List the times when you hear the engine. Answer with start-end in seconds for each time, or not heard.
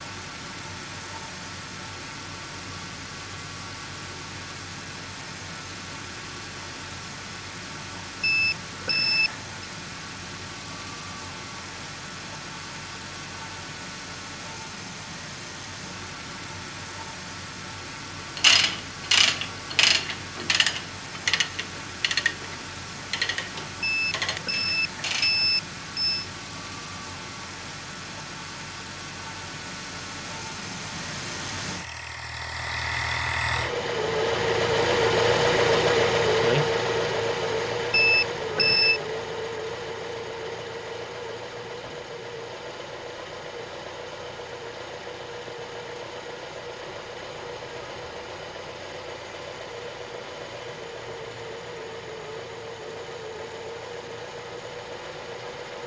0.0-55.8.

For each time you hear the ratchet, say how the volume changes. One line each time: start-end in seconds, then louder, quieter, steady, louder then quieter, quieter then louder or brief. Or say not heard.
18.4-25.4 quieter.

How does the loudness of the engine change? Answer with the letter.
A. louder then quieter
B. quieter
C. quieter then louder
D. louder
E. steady
A.